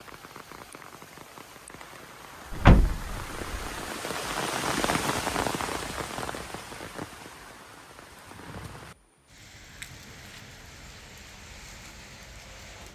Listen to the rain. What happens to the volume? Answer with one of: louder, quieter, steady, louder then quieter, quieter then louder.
louder then quieter.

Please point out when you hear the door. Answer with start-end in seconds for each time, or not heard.
2.5-3.6.